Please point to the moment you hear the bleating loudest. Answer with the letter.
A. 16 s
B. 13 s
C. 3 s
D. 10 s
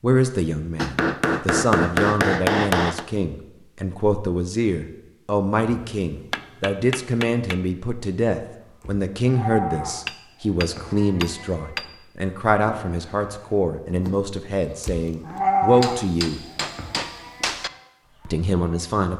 A.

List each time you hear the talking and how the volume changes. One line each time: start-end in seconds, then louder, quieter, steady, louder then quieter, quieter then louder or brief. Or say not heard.
0.0-16.4 steady
18.2-19.1 brief.